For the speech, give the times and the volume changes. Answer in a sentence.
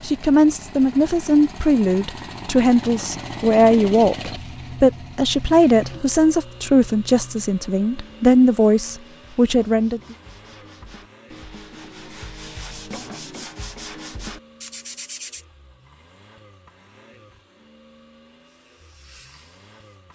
The speech can be heard from 0.0 to 10.2 s, at a steady volume.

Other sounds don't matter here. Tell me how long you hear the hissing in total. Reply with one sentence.
The hissing can be heard for 2 seconds in total.